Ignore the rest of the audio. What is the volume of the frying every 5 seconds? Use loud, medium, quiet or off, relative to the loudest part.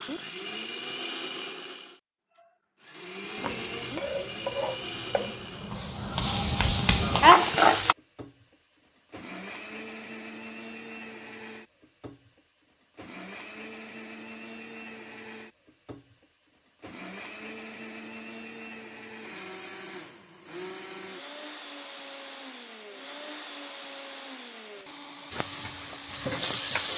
quiet, loud, off, off, off, medium.